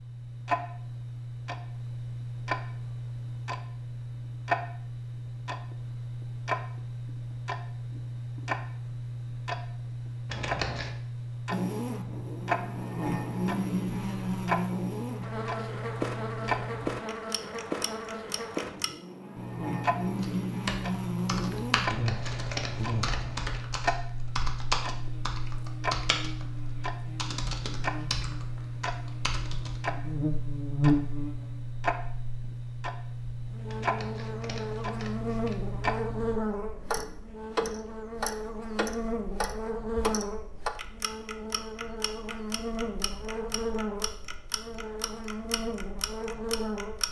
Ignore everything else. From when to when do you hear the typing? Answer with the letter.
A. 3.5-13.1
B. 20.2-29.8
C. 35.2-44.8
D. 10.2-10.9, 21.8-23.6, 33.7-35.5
B.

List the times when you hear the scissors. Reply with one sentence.
You can hear the scissors from 10.2 to 10.9 s, from 21.8 to 23.6 s and from 33.7 to 35.5 s.